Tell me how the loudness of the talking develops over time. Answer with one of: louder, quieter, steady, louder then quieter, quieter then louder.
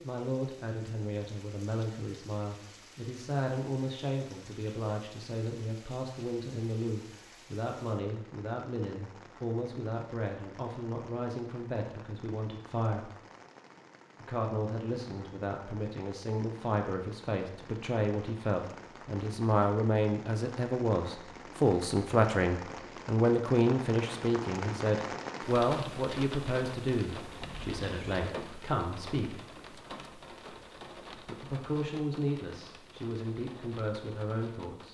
louder then quieter.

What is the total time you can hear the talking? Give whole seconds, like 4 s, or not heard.
32 s.